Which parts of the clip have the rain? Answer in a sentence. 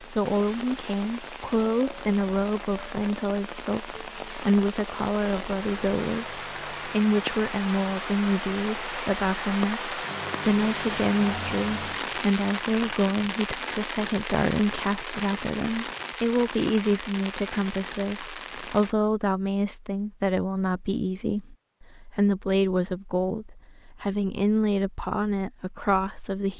The rain can be heard from 0.0 to 18.9 s.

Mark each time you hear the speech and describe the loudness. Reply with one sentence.
You can hear the speech from 0.0 to 26.5 s, at a steady volume.